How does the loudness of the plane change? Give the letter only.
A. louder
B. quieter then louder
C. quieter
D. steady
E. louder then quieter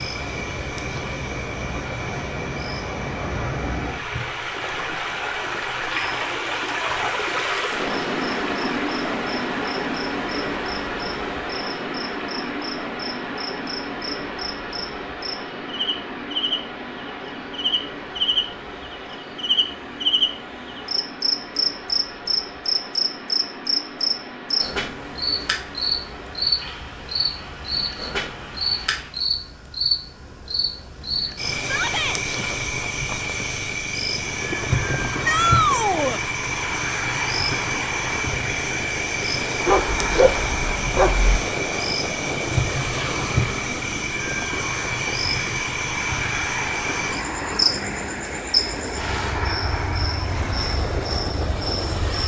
D.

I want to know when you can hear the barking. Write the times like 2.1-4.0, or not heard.
39.6-41.4.